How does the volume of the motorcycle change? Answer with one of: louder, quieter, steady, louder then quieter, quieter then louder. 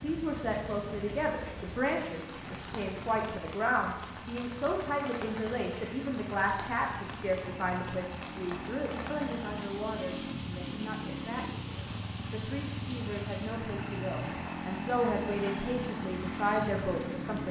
louder.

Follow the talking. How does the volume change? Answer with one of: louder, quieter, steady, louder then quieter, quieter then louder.
quieter then louder.